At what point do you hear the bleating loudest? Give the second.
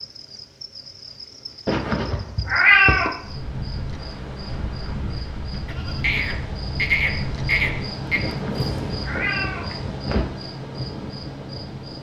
7 s.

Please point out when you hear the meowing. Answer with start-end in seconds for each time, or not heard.
1.6-3.1, 8.2-10.2.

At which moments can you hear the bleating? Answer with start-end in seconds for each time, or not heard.
5.7-8.2.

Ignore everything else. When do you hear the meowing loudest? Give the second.
3 s.